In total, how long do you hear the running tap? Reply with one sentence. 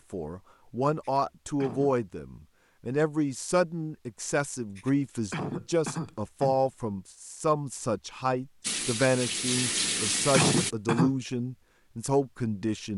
The running tap can be heard for 2 seconds in total.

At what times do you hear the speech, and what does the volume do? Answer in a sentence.
You can hear the speech from 0.1 to 12.9 s, at a steady volume.